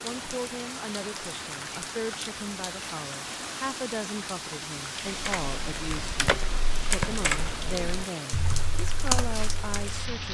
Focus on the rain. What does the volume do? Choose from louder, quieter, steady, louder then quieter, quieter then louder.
steady.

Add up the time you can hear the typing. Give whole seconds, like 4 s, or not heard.
5 s.